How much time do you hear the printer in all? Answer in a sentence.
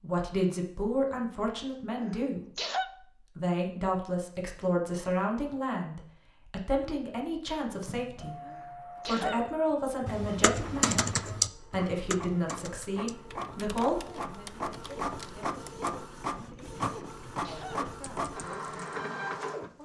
You can hear the printer for 12 seconds altogether.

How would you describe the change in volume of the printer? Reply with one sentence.
The volume of the printer goes up.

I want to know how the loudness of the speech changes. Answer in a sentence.
The volume of the speech goes down.